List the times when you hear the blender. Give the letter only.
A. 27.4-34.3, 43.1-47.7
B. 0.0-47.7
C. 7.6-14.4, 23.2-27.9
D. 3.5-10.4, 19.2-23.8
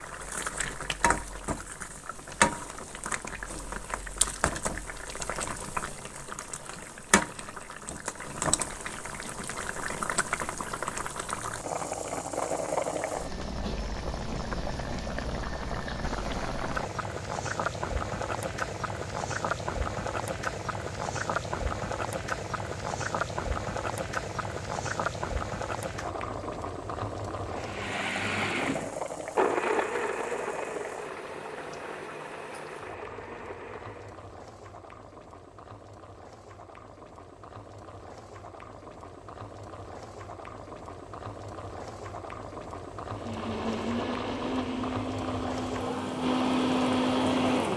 A.